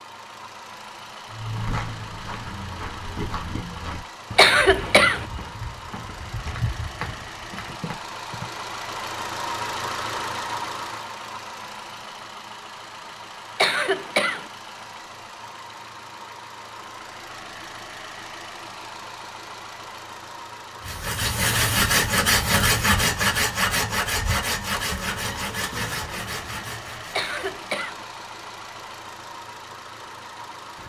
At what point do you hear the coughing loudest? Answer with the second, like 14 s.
5 s.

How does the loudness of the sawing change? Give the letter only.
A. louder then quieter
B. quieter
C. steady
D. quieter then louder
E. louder
B.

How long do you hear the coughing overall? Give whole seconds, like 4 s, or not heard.
3 s.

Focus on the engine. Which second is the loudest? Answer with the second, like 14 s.
10 s.